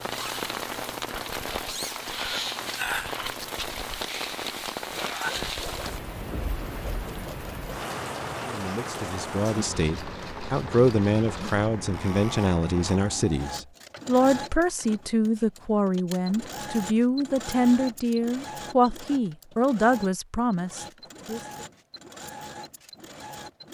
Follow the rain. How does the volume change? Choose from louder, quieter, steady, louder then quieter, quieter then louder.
quieter.